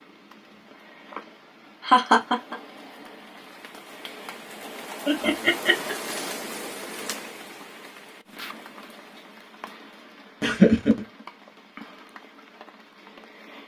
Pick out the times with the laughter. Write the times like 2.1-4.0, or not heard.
1.9-2.5, 5.0-6.1, 10.4-11.1.